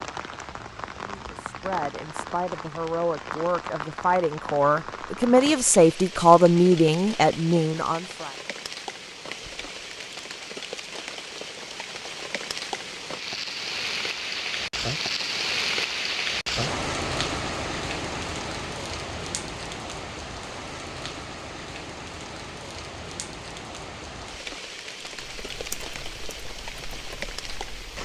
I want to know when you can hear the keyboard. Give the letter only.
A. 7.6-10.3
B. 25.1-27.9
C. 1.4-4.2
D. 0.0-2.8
B.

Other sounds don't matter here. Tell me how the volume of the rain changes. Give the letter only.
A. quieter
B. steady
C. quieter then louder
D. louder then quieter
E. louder
D.